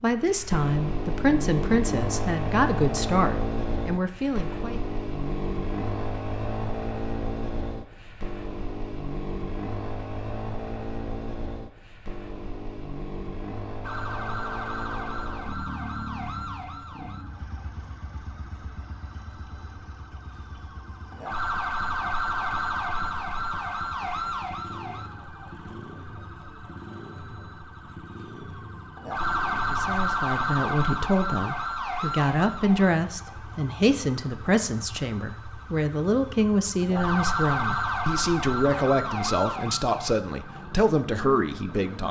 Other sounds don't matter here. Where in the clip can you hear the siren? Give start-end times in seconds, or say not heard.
13.8-42.0.